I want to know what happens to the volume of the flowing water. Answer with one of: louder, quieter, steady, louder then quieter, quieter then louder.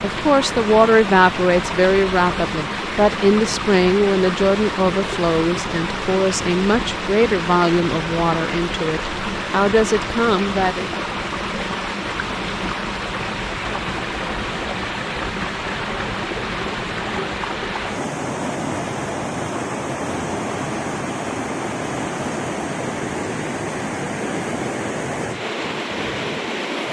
steady.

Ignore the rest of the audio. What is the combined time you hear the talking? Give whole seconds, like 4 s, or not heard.
11 s.